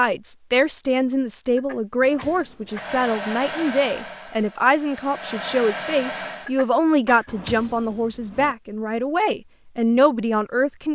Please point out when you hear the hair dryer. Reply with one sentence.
The hair dryer can be heard from 2.6 to 6.5 s.